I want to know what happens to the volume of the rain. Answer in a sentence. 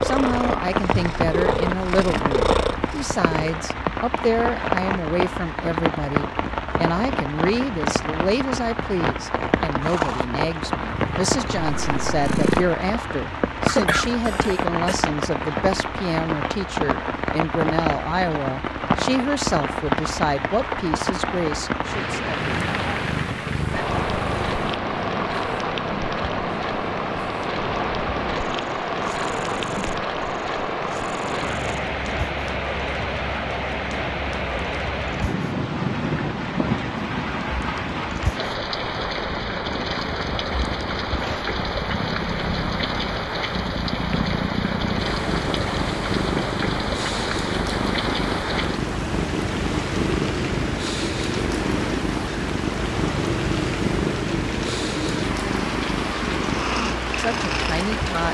The loudness of the rain stays about the same.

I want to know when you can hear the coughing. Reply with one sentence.
The coughing can be heard from 13.7 to 14.9 s.